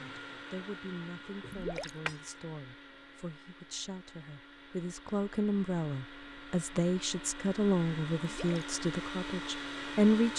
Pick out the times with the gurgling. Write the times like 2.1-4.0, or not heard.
1.4-1.9, 8.2-8.7.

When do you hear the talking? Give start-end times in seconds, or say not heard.
0.0-10.3.